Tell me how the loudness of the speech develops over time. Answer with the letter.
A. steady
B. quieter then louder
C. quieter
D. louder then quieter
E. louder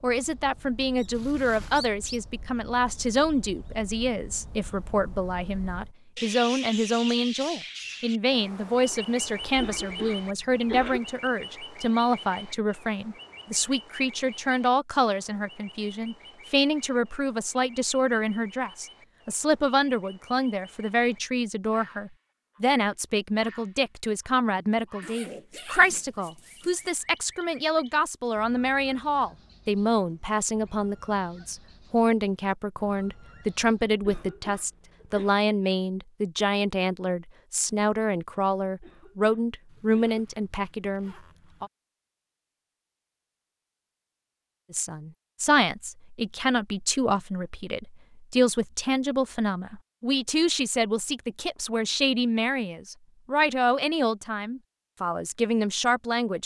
A.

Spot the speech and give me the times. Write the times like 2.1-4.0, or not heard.
0.0-41.7, 44.7-56.4.